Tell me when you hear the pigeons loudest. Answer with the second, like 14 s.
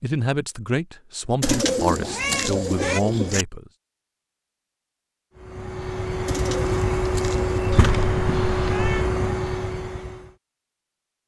2 s.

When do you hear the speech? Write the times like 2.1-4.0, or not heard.
0.0-3.7.